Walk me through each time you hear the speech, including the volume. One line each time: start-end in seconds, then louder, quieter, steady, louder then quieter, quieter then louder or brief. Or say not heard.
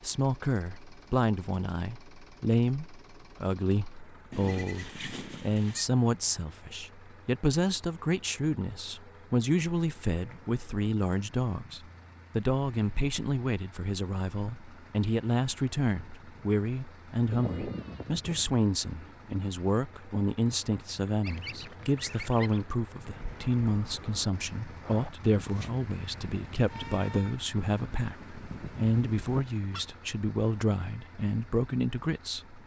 0.0-32.6 steady.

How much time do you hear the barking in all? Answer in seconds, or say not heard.
not heard.